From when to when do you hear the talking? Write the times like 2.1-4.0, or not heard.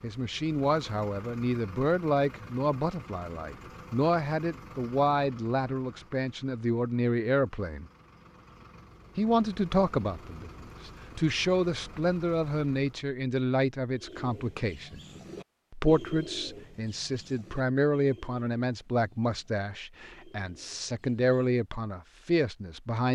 0.0-7.8, 9.2-15.0, 15.7-23.1.